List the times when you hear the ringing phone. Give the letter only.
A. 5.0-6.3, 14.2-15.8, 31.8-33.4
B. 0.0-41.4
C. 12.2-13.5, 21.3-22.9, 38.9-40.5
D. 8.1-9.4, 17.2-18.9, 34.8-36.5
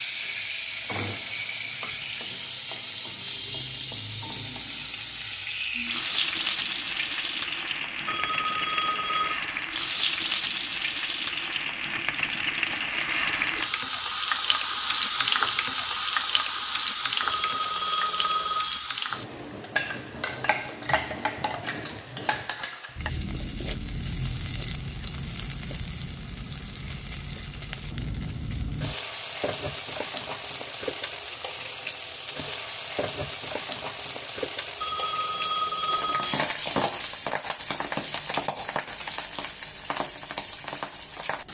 D.